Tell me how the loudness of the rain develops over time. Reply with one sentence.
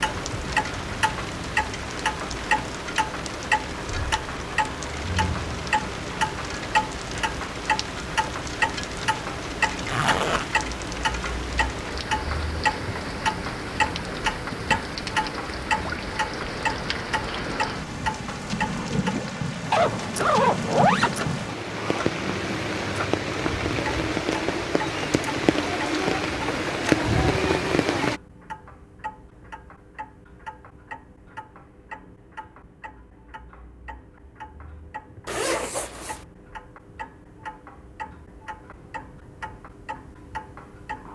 The loudness of the rain goes up.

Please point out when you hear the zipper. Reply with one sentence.
The zipper can be heard from 9.8 to 10.5 s, from 19.7 to 21.2 s and from 35.2 to 36.2 s.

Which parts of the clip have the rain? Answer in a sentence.
The rain can be heard from 0.0 to 28.2 s.